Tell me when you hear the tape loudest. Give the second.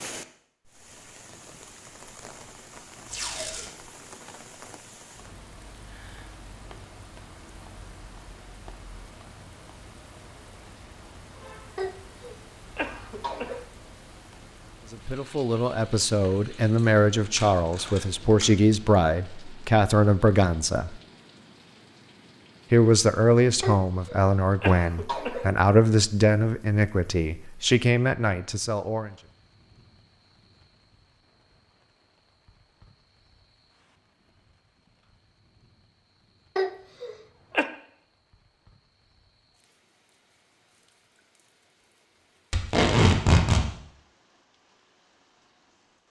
43 s.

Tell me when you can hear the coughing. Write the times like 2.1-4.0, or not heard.
11.8-13.7, 23.6-25.6, 36.5-37.7.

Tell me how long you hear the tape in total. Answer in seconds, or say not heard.
3 s.